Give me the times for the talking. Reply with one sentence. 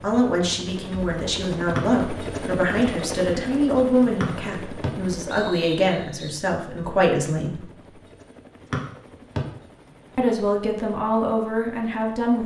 The talking can be heard from 0.0 to 7.7 s and from 10.2 to 12.4 s.